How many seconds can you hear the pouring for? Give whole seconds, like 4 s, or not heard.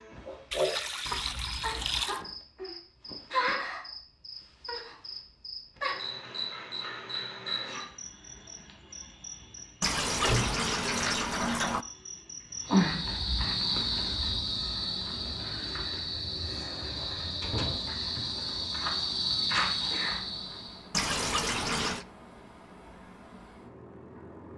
5 s.